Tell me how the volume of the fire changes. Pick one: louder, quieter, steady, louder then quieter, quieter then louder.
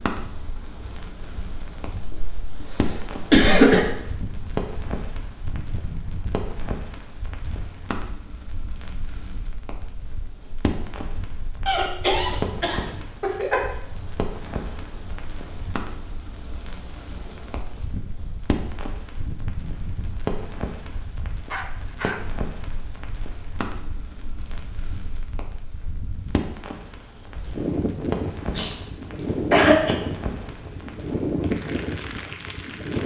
steady.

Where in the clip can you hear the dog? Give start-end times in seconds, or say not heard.
21.4-22.4.